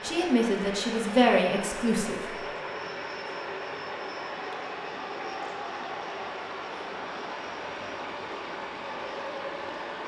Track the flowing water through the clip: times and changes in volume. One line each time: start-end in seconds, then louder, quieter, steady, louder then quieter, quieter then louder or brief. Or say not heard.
0.0-10.0 steady.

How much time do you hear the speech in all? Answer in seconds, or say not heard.
2 s.